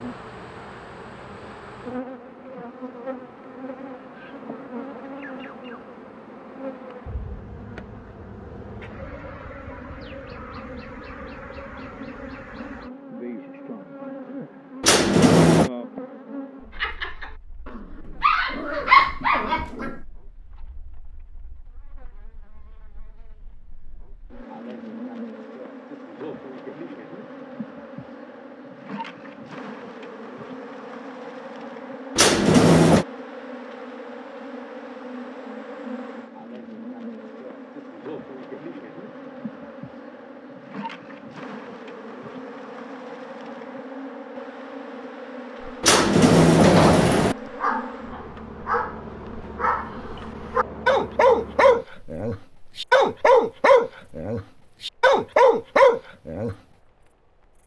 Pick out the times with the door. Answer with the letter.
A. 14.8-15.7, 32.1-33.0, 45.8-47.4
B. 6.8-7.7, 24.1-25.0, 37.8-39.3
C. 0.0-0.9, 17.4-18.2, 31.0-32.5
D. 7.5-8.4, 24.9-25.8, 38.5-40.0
A.